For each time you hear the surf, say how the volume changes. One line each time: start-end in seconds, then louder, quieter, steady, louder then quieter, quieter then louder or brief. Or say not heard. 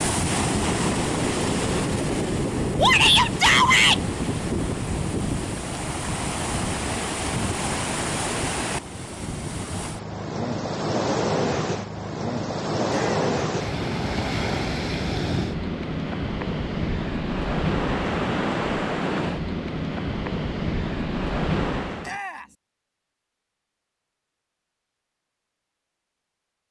0.0-22.2 steady.